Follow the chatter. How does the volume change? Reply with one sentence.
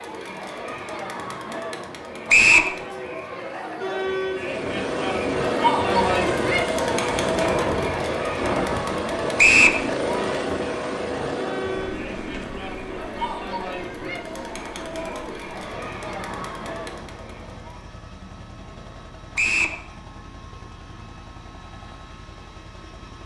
The volume of the chatter goes up, then down.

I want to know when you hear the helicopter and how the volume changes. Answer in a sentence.
You can hear the helicopter from 4.3 to 23.2 s, getting quieter.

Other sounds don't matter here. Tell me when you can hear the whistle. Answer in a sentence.
The whistle can be heard from 2.2 to 2.7 s, from 9.3 to 9.8 s and from 19.4 to 19.8 s.